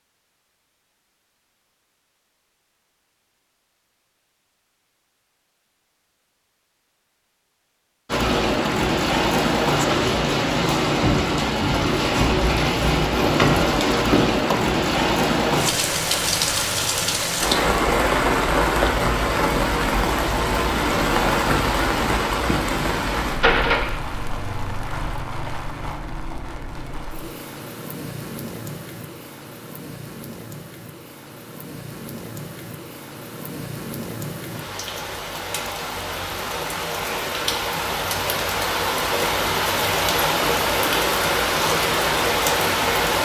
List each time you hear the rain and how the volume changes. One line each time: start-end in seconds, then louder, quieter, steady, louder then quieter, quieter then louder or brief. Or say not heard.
8.1-43.1 quieter then louder.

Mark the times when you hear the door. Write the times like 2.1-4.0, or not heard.
13.1-14.7, 23.3-23.9.